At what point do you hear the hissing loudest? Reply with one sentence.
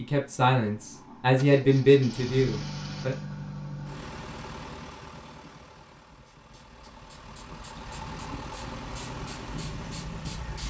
The loudest moment of the hissing is at 10 seconds.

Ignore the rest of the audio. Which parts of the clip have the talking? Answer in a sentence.
The talking can be heard from 0.0 to 3.1 s.